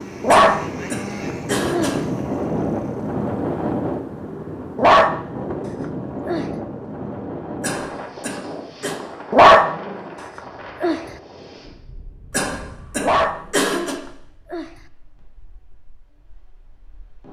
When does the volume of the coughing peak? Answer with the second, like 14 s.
14 s.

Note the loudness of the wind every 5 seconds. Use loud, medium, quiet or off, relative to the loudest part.
loud, medium, quiet, quiet.